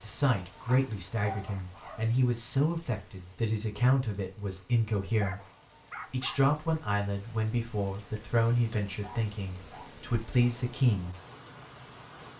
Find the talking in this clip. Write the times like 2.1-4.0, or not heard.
0.0-5.4, 6.1-11.2.